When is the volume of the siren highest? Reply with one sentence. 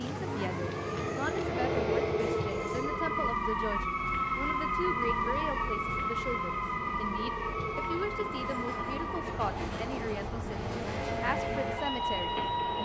The loudest moment of the siren is at 5 seconds.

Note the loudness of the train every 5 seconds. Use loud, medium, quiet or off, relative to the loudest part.
loud, medium, loud.